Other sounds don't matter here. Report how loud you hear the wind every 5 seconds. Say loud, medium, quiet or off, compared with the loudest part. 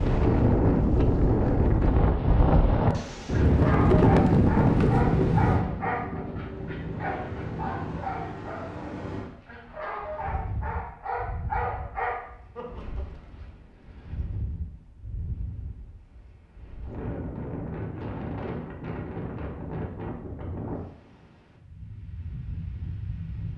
loud, medium, quiet, quiet, quiet.